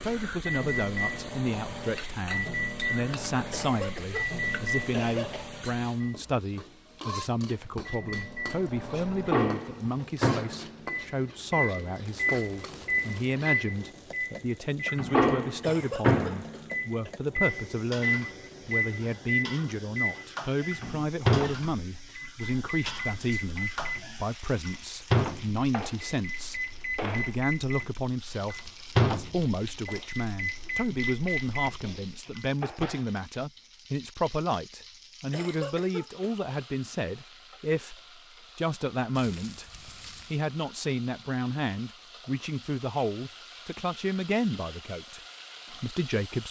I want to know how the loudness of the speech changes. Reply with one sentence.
The loudness of the speech stays about the same.